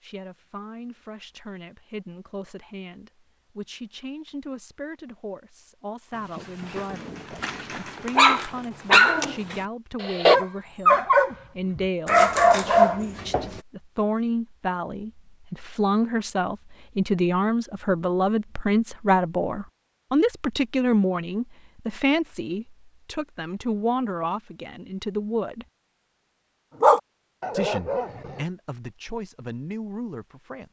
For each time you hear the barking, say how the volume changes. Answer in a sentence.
The barking can be heard from 6.3 to 13.5 s, getting louder; and briefly from 26.8 to 28.4 s.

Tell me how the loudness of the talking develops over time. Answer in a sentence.
The loudness of the talking goes up, then down.